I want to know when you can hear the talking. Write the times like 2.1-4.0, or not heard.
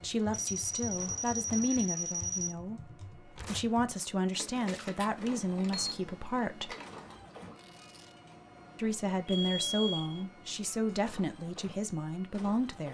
0.0-6.8, 8.8-12.9.